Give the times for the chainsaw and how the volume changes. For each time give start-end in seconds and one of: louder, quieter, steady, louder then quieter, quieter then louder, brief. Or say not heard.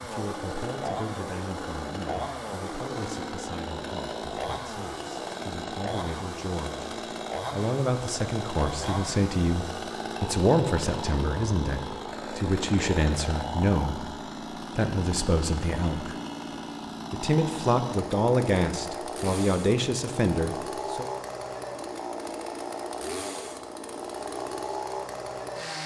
0.0-25.8 steady.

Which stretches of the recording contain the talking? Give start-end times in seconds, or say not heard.
0.0-6.9, 7.5-14.1, 14.8-16.1, 17.1-21.1.